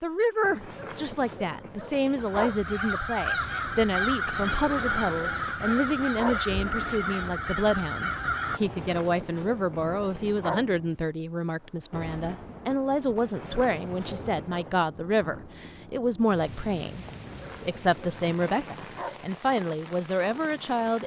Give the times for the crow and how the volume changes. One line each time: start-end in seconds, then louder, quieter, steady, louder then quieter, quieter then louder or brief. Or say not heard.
2.1-8.6 steady.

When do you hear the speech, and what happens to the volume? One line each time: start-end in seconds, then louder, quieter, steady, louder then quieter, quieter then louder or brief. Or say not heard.
0.0-21.0 steady.